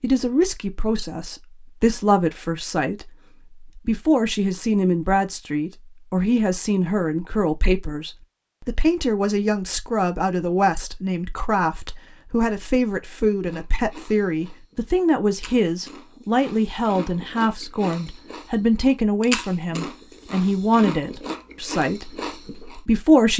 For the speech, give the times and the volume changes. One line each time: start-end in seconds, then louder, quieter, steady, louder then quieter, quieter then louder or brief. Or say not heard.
0.0-23.3 steady.